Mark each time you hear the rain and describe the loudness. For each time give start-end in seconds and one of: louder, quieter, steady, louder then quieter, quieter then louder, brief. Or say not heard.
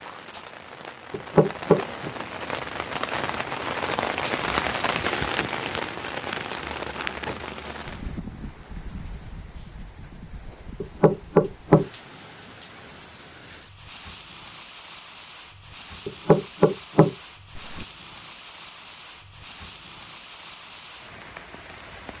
0.0-22.1 quieter.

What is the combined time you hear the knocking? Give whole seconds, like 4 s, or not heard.
4 s.